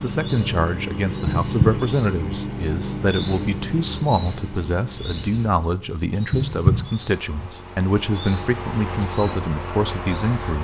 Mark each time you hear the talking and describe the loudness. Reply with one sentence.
The talking can be heard from 0.0 to 10.5 s, at a steady volume.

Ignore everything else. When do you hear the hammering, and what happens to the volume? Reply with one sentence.
You can't hear the hammering here.